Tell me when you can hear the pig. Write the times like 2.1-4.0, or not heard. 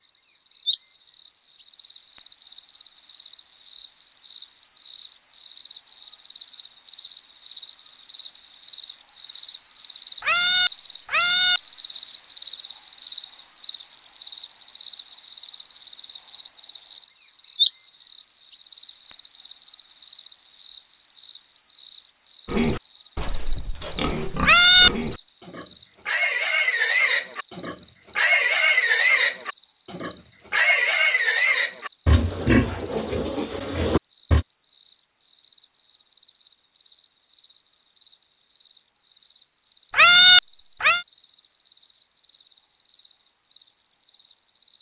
22.4-34.5.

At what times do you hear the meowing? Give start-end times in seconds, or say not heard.
10.2-11.6, 24.4-24.9, 39.9-41.0.